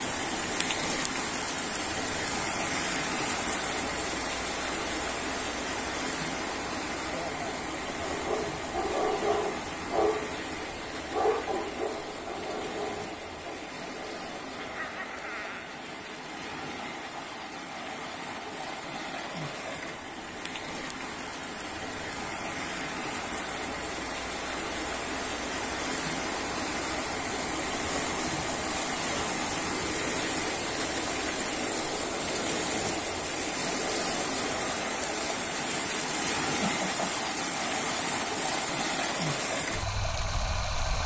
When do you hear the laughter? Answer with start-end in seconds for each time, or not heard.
7.1-8.0, 14.6-15.8, 36.6-37.2.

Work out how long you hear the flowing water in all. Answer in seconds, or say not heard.
41 s.